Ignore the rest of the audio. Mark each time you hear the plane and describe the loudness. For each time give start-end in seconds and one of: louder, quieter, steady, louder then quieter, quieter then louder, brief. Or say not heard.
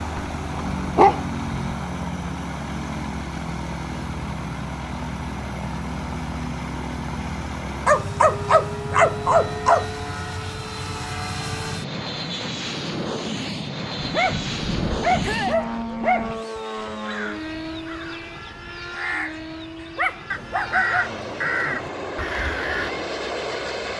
0.0-23.9 steady.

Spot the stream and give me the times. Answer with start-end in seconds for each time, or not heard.
not heard.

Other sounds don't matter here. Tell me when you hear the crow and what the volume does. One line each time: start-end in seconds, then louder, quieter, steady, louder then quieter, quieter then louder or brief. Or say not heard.
16.6-22.9 louder.